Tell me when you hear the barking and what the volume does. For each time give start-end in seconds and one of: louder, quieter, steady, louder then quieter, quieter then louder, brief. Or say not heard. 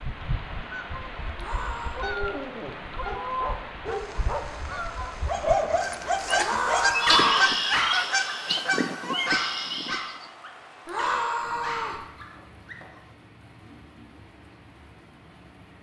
1.9-13.1 louder then quieter.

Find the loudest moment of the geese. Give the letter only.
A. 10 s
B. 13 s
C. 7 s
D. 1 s
C.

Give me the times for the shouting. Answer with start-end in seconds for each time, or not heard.
1.4-2.0, 6.3-7.5, 10.8-12.1.